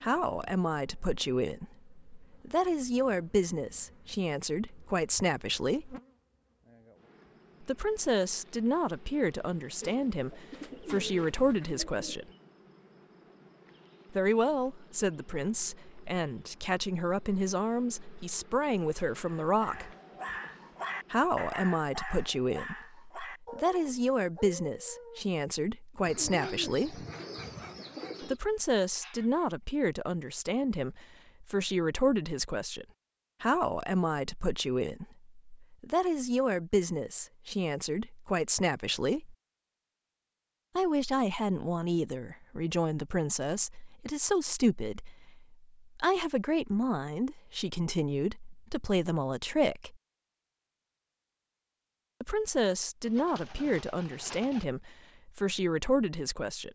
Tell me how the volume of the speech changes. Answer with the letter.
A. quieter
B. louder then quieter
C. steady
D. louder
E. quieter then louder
C.